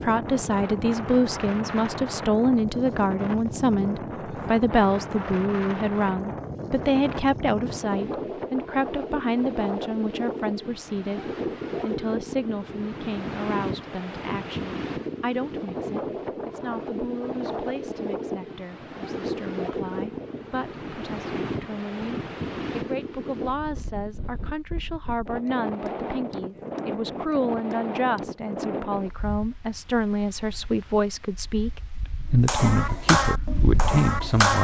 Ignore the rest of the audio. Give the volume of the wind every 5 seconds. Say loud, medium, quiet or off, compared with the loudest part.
loud, loud, loud, loud, loud, loud, medium.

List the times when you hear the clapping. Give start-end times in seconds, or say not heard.
32.5-34.5.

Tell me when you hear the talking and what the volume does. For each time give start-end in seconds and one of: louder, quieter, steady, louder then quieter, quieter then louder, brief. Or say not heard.
0.0-34.5 quieter then louder.